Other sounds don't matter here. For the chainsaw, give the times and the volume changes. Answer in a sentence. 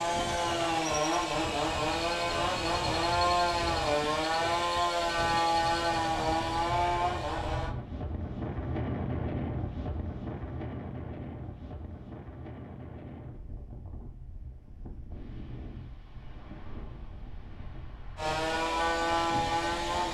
You can hear the chainsaw from 0.0 to 7.8 s, at a steady volume; and briefly from 18.1 to 20.0 s.